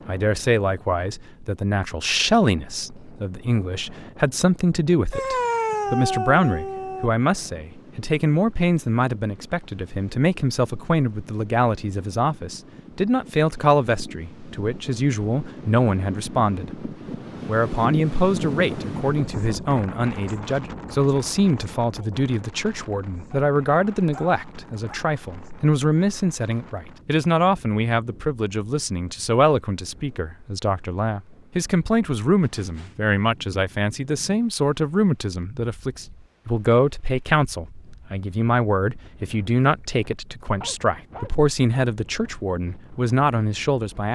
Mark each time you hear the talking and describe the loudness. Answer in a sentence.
The talking can be heard from 0.1 to 44.1 s, at a steady volume.